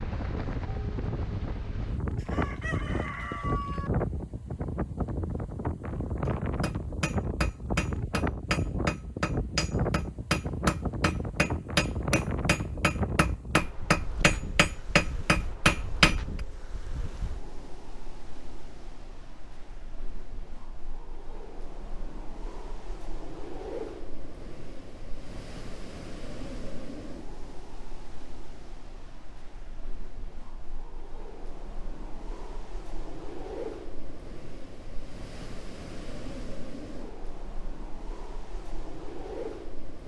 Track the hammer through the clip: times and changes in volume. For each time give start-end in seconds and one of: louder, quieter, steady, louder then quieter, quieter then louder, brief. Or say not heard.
6.2-16.2 louder.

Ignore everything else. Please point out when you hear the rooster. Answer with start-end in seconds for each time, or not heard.
2.1-3.9.